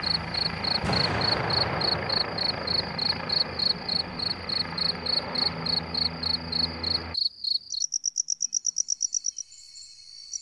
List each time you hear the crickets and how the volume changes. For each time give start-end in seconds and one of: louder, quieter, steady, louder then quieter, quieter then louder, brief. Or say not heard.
0.0-10.3 steady.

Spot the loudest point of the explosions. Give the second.
1 s.